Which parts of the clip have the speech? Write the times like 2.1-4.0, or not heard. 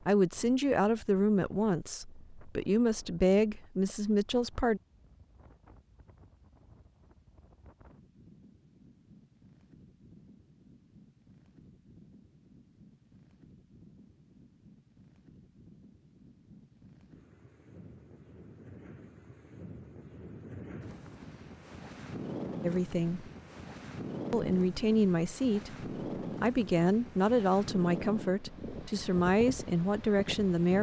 0.1-4.8, 22.6-23.2, 24.3-30.7.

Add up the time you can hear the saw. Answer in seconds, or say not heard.
not heard.